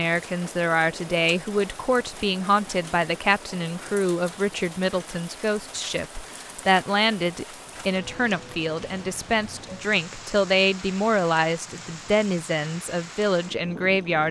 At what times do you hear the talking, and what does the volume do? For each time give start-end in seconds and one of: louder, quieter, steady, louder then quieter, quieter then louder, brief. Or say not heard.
0.0-14.2 steady.